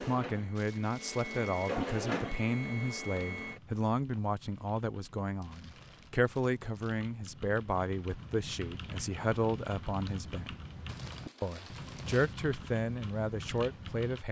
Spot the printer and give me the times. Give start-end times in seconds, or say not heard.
0.0-3.6.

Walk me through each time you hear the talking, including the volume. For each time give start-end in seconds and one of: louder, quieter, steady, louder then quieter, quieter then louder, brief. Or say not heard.
0.0-10.6 steady
11.4-14.2 brief.